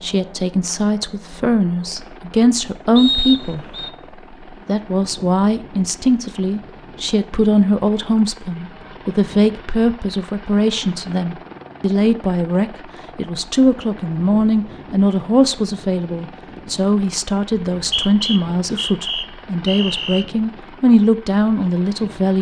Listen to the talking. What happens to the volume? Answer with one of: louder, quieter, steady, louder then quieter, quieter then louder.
steady.